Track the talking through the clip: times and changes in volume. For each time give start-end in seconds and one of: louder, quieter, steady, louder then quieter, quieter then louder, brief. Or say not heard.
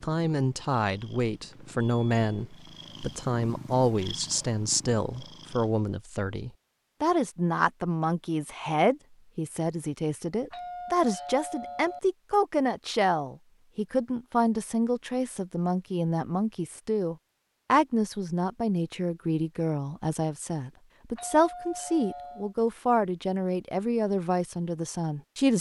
0.0-25.5 steady.